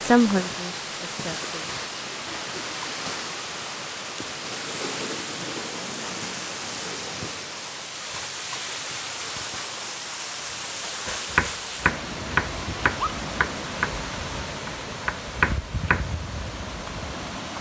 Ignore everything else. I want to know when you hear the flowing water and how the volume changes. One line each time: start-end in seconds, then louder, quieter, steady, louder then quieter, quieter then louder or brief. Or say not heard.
0.0-17.5 steady.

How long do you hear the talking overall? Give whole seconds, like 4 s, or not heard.
2 s.